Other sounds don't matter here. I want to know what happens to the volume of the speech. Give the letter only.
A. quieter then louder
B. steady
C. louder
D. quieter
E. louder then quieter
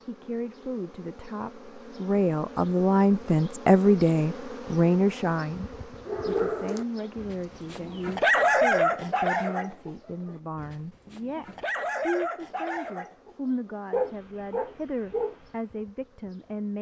D.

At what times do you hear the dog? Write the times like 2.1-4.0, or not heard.
6.0-15.8.